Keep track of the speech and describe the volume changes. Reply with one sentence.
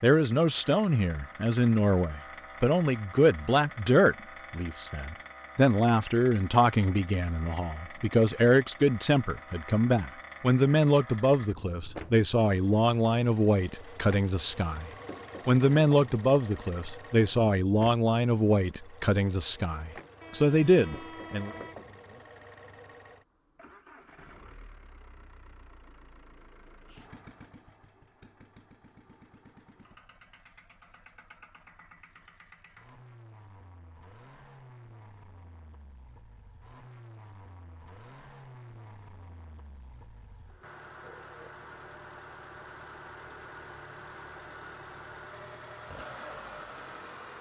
The volume of the speech stays about the same.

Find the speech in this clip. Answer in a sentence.
You can hear the speech from 0.0 to 21.5 s.